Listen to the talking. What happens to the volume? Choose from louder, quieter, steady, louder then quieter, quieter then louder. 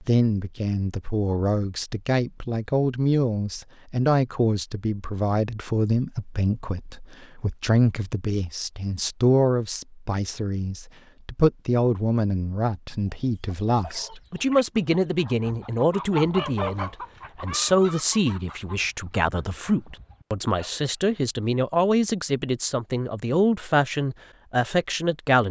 steady.